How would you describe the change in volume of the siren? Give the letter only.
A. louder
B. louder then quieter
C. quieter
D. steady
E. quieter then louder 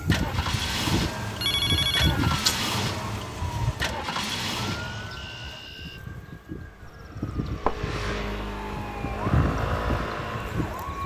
E.